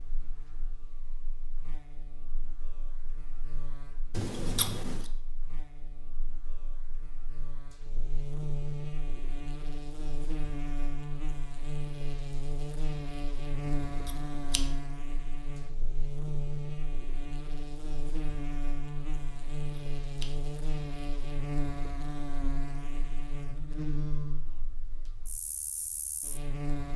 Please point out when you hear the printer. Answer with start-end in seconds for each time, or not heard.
not heard.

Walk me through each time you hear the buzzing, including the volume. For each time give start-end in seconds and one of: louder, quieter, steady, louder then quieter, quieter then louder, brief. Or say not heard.
0.0-26.9 louder.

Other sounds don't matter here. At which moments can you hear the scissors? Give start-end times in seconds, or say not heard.
4.1-5.1, 13.7-14.7, 19.3-20.4.